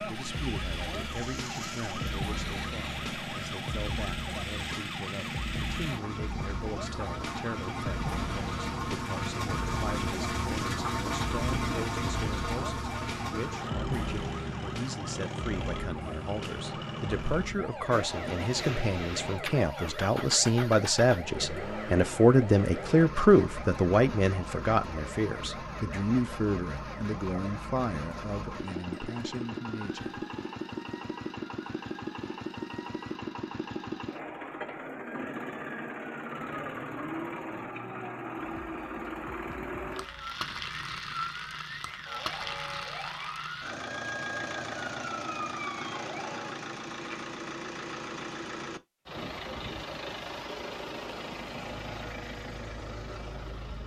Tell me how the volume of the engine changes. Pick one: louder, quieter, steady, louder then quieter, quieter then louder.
steady.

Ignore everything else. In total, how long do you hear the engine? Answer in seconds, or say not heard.
54 s.